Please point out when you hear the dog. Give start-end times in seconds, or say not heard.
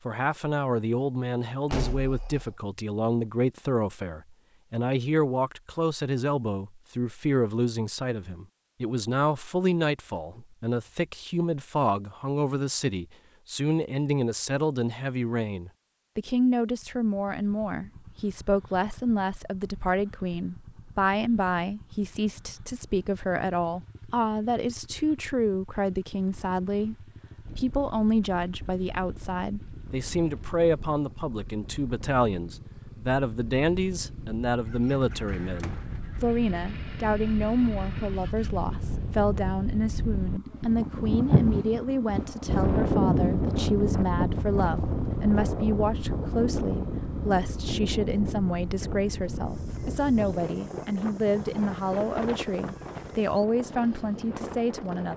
not heard.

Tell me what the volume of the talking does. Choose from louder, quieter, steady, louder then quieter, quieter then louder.
steady.